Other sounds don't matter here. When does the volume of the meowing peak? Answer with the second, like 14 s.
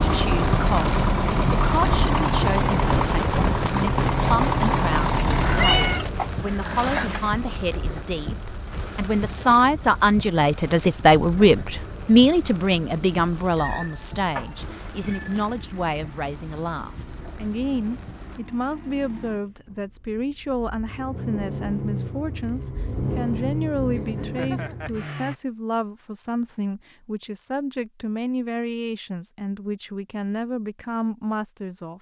6 s.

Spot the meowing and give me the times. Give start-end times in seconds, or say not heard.
5.4-7.3, 13.5-15.4, 23.9-25.1.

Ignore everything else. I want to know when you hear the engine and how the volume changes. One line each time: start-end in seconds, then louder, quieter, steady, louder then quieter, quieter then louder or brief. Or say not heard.
0.0-6.1 steady
14.5-25.4 louder.